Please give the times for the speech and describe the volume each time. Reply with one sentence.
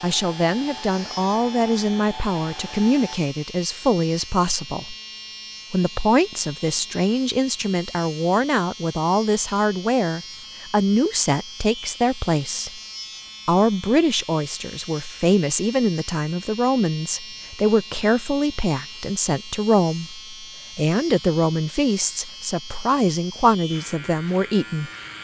The speech can be heard from 0.0 to 5.0 s, at a steady volume; from 5.7 to 12.8 s, at a steady volume; and from 13.4 to 24.9 s, at a steady volume.